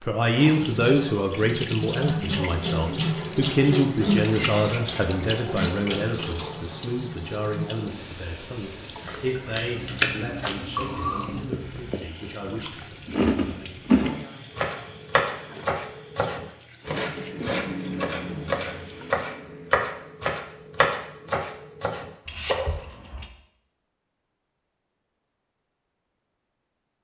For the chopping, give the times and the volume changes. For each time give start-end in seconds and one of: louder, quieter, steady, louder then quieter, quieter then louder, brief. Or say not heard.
14.6-23.2 steady.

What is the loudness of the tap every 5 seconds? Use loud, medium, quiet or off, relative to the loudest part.
loud, medium, quiet, quiet, off, off.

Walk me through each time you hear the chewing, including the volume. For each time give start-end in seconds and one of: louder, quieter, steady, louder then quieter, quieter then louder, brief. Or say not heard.
9.0-14.1 quieter then louder.